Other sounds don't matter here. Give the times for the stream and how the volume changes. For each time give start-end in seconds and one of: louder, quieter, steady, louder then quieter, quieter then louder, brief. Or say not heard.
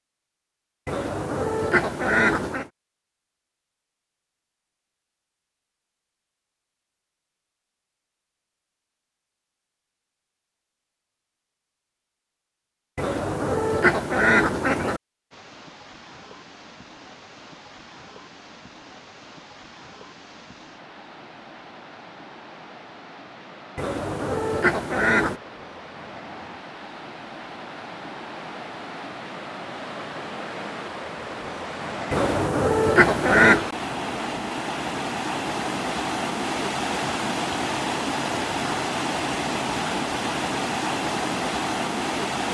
15.3-42.4 louder.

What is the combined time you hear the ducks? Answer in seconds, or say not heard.
7 s.